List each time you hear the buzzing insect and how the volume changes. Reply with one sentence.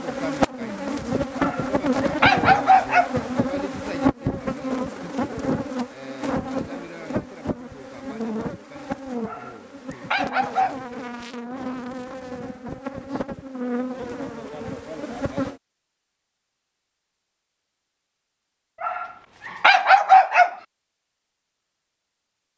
The buzzing insect can be heard from 0.0 to 15.6 s, getting quieter.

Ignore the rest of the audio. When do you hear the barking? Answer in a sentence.
The barking can be heard from 1.4 to 3.1 s, from 9.2 to 10.8 s and from 18.8 to 20.6 s.